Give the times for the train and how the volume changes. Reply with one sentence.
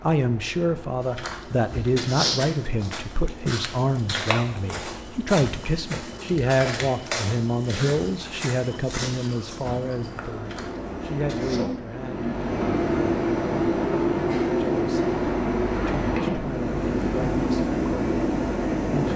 The train can be heard from 0.0 to 19.1 s, getting louder.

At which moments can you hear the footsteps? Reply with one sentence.
You can hear the footsteps from 1.0 to 11.6 s.